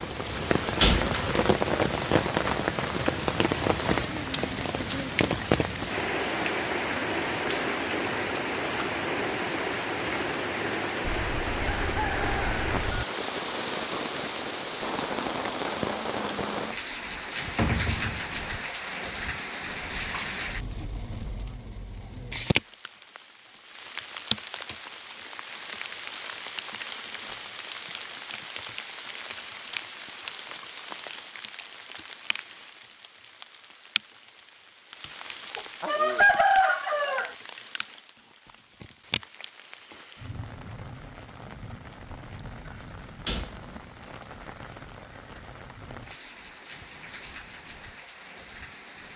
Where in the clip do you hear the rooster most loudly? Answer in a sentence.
The volume of the rooster peaks at 36 seconds.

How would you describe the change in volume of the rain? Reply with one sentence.
The loudness of the rain goes down.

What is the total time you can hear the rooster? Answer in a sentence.
You can hear the rooster for 4 seconds altogether.